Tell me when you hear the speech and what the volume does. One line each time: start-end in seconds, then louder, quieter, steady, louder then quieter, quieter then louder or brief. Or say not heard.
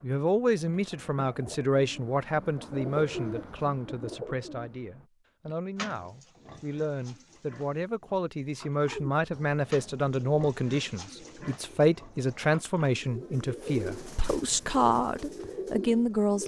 0.0-16.4 quieter then louder.